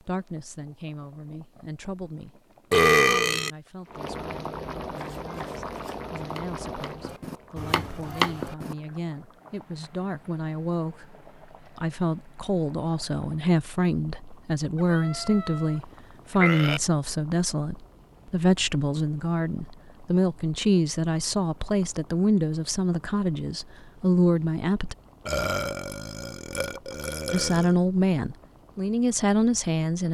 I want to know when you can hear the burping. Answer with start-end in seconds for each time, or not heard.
2.7-3.5, 14.8-15.8, 16.4-16.8, 25.2-27.7.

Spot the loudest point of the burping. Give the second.
3 s.